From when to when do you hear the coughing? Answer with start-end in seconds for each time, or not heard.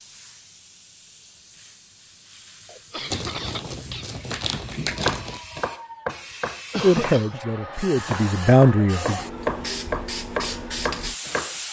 2.6-4.1, 6.7-7.4.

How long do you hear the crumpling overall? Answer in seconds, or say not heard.
2 s.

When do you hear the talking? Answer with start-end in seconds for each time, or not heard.
6.8-9.2.